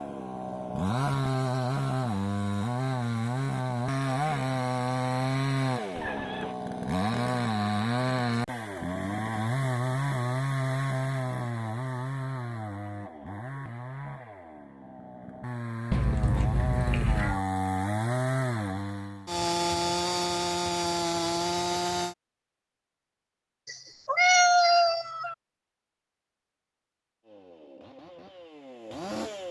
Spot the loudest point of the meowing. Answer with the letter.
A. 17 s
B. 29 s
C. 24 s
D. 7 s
C.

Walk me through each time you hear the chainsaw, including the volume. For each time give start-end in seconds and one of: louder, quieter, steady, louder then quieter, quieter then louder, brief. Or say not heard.
0.0-22.1 quieter then louder
27.2-29.4 brief.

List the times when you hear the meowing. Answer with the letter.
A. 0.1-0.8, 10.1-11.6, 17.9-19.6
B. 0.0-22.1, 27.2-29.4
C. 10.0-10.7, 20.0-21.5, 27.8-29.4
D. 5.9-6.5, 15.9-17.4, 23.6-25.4
D.